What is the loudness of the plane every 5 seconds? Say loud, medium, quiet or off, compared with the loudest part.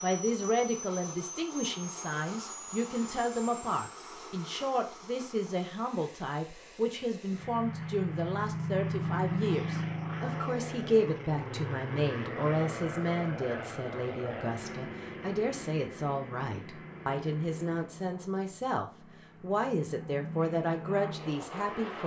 medium, loud, loud, medium, loud.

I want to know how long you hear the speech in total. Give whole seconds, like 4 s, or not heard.
22 s.